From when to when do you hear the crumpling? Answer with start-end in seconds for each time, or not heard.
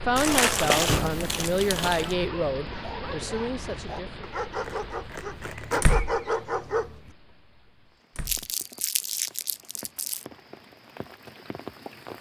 0.1-2.1, 4.6-5.8, 8.2-10.2.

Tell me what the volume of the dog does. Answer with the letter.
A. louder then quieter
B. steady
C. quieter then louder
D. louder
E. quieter
D.